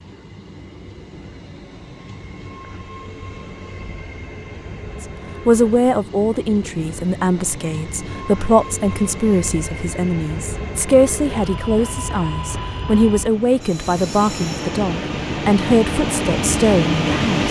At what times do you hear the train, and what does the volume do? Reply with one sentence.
The train can be heard from 0.0 to 17.4 s, getting louder.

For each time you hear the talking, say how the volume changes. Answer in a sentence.
You can hear the talking from 5.5 to 17.4 s, at a steady volume.